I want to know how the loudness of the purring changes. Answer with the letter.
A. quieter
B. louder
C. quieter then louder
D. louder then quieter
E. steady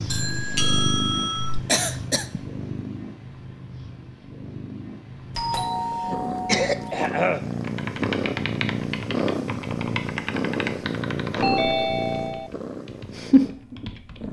C.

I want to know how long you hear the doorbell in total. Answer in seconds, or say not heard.
4 s.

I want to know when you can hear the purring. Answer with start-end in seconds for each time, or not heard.
0.0-14.2.